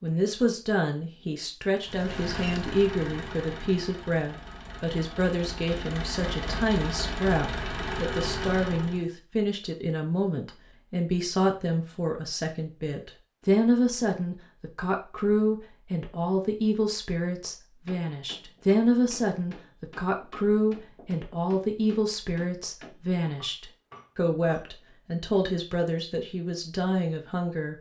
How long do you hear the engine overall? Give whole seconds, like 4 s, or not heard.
7 s.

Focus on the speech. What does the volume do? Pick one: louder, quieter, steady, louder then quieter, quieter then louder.
steady.